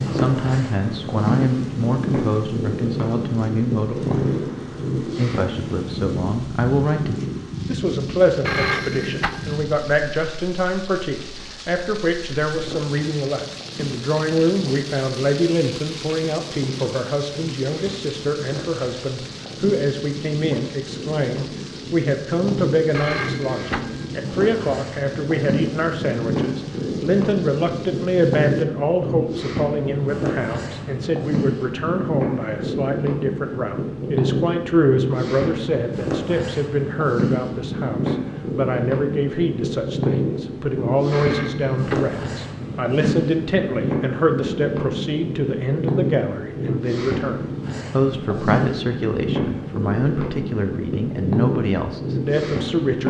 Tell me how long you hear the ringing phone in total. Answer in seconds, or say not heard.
3 s.